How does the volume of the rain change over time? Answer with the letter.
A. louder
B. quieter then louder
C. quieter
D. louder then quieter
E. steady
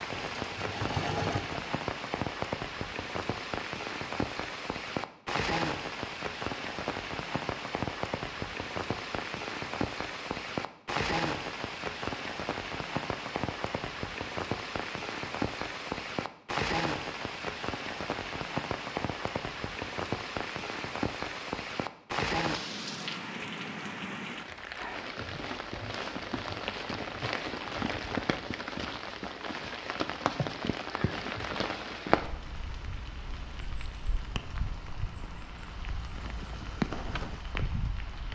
E.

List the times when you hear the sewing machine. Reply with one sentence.
You can hear the sewing machine from 0.1 to 1.7 s.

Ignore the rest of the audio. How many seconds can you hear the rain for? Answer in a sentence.
You can hear the rain for 38 seconds altogether.